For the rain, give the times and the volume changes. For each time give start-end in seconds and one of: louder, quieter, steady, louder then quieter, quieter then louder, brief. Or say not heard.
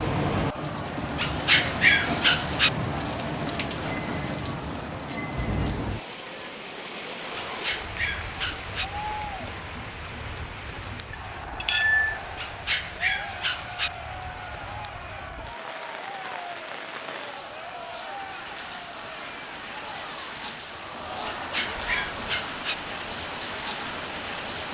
0.0-24.6 quieter then louder.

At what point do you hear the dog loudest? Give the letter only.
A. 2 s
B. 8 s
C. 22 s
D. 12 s
A.